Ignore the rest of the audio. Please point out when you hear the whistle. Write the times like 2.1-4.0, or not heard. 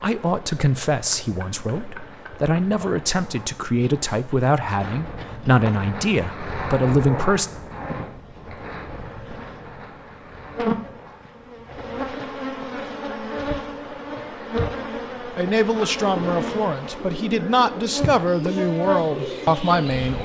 not heard.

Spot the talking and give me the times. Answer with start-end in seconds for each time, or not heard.
0.0-7.5, 15.2-20.2.